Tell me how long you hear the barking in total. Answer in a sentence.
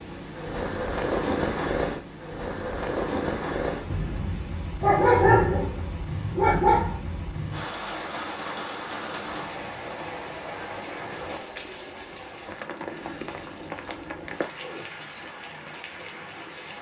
The barking can be heard for 2 seconds in total.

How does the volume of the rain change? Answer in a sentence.
The volume of the rain goes down.